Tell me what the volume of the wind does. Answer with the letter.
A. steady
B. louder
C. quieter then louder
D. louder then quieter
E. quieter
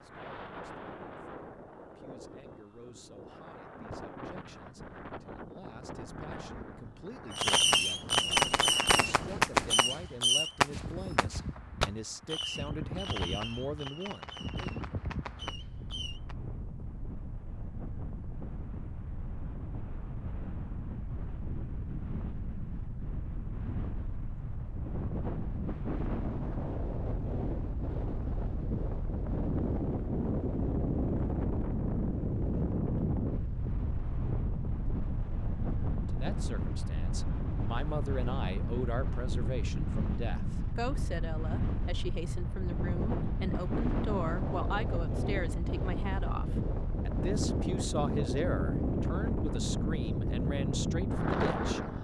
B.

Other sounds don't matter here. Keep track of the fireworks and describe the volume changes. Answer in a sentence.
The loudness of the fireworks goes down.